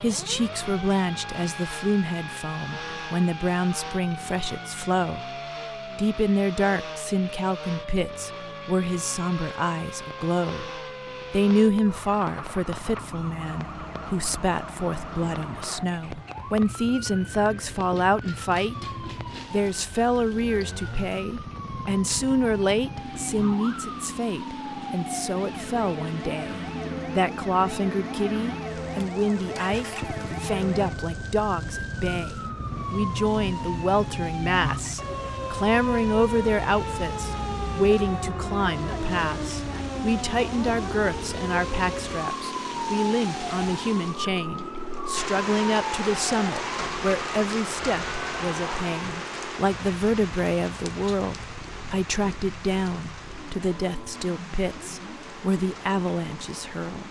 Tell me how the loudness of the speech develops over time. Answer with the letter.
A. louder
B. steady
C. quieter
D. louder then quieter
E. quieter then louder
B.